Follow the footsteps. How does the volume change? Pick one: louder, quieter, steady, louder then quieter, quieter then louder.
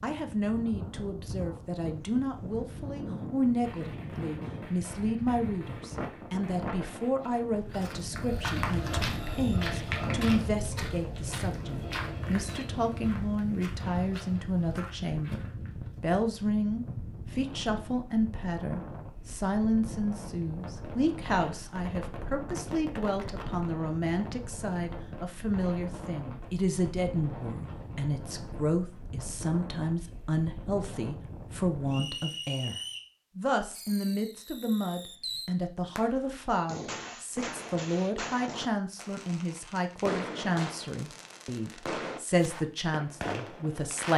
quieter.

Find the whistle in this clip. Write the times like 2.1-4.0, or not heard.
31.9-33.0.